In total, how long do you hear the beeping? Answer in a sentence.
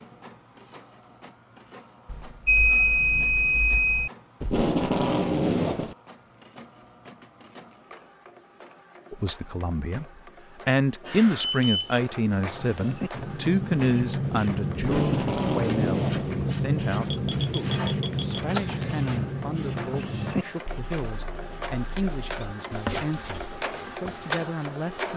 You can hear the beeping for 5 seconds altogether.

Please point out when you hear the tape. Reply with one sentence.
You can hear the tape from 4.4 to 6.0 s and from 14.8 to 16.3 s.